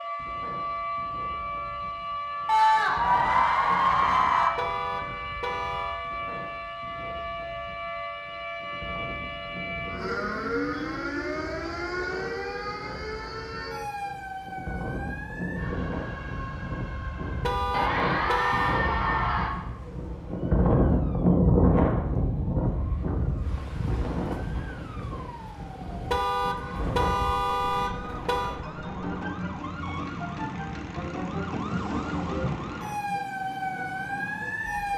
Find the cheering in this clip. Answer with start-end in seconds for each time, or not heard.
2.5-4.5, 17.7-19.5.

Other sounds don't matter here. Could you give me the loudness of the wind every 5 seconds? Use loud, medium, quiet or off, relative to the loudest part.
quiet, quiet, quiet, medium, loud, quiet, quiet.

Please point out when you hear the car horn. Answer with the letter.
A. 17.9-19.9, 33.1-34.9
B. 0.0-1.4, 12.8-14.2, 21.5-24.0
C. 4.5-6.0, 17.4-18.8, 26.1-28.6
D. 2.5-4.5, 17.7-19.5
C.